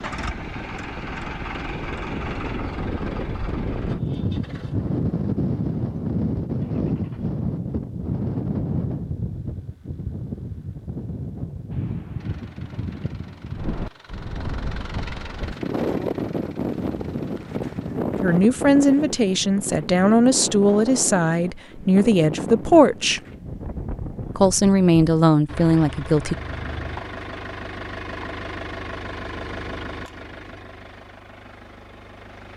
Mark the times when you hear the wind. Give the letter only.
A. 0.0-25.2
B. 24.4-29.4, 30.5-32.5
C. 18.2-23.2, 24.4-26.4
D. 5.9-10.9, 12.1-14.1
A.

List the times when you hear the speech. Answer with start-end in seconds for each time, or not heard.
18.2-23.2, 24.4-26.4.